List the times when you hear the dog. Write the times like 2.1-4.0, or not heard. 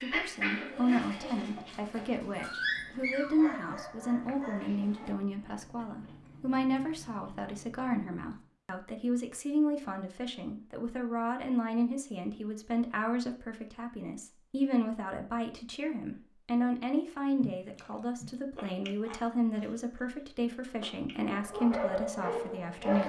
0.0-5.2, 21.2-23.0.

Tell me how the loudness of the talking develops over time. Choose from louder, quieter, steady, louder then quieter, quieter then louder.
steady.